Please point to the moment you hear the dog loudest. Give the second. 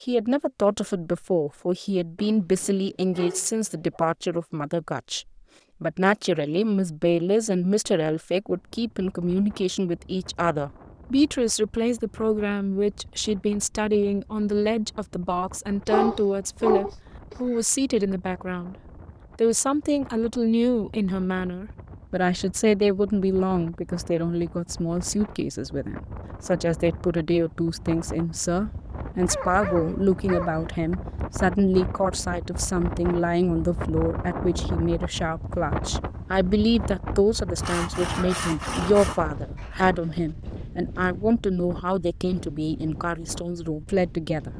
16 s.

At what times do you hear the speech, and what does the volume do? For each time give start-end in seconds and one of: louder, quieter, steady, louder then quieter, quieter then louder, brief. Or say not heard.
0.0-18.8 steady
19.4-44.5 steady.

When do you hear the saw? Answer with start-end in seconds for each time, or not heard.
37.5-39.2.